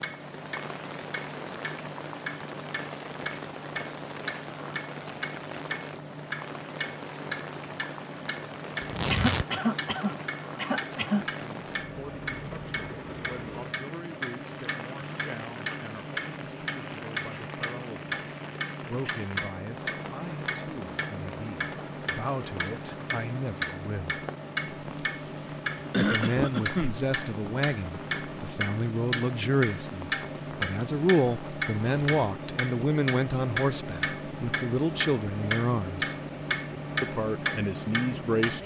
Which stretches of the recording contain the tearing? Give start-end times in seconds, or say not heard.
8.8-9.4, 31.7-32.2.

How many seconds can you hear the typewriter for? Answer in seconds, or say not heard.
not heard.